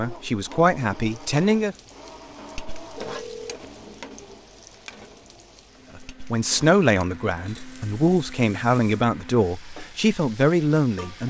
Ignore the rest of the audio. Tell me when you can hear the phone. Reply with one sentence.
You can hear the phone from 3.0 to 3.6 s.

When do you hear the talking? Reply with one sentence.
You can hear the talking from 0.0 to 1.8 s and from 6.0 to 11.2 s.